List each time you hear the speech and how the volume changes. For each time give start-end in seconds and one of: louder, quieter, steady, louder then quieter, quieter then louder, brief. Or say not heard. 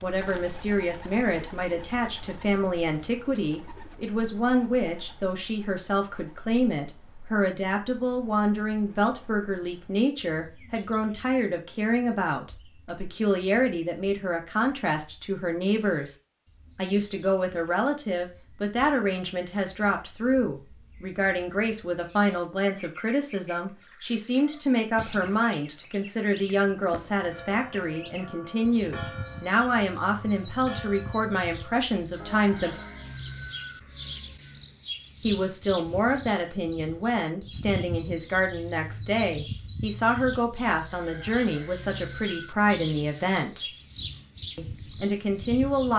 0.0-16.1 steady
16.8-32.8 steady
35.2-43.6 steady
44.5-45.9 brief.